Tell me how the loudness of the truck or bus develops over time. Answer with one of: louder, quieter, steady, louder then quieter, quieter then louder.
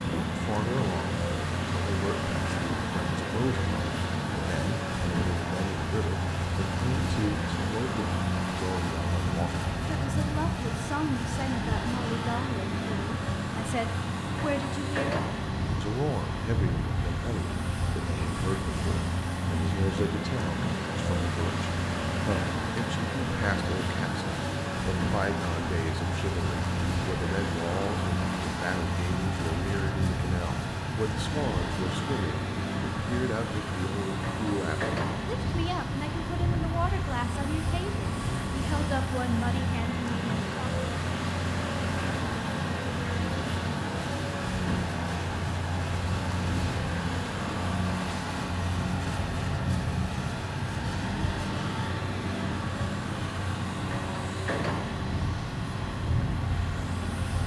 steady.